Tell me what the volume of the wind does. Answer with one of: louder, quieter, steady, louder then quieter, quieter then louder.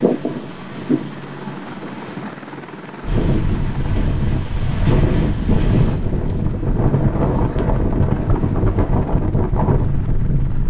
louder.